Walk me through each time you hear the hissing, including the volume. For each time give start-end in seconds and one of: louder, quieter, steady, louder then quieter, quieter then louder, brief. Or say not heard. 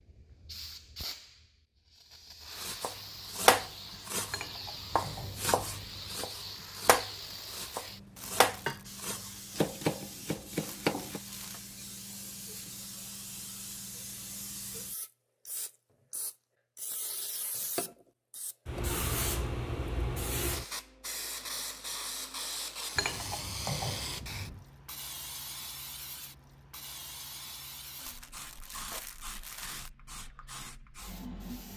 0.0-31.7 louder then quieter.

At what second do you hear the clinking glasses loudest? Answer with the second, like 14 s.
24 s.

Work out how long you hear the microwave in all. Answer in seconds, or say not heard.
not heard.